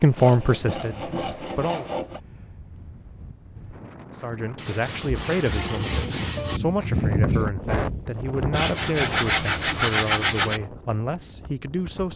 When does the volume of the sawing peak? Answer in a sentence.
The volume of the sawing peaks at 10 seconds.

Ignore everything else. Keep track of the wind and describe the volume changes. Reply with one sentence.
The loudness of the wind goes up, then down.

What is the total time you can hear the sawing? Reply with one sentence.
The sawing can be heard for 6 seconds in total.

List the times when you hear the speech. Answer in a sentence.
The speech can be heard from 0.0 to 1.9 s and from 4.2 to 12.1 s.